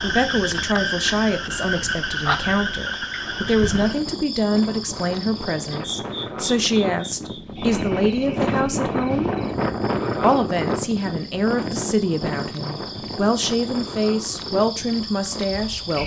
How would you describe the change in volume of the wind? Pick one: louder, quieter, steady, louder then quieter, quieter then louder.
louder then quieter.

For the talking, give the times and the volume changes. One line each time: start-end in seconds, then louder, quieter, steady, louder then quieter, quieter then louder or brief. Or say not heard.
0.0-9.3 steady
10.2-16.0 steady.